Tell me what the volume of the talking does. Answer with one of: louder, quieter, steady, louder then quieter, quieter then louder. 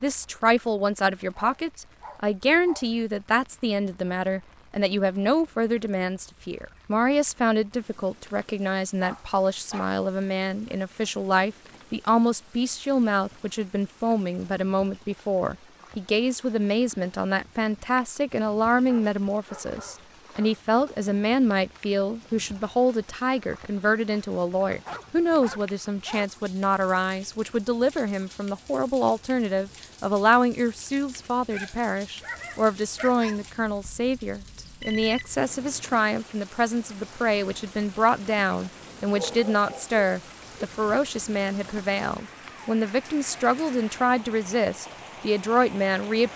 steady.